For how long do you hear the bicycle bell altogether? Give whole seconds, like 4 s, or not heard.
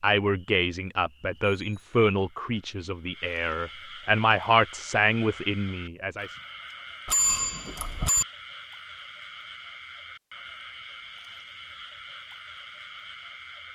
2 s.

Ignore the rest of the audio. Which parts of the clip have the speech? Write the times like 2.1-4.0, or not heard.
0.0-6.3.